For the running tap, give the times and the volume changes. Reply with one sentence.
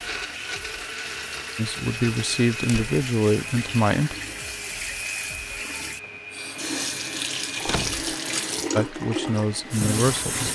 You can hear the running tap from 0.0 to 10.5 s, getting louder.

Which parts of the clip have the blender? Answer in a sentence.
The blender can be heard from 0.0 to 10.4 s.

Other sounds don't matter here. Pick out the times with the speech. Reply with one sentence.
You can hear the speech from 1.6 to 4.2 s and from 8.8 to 10.5 s.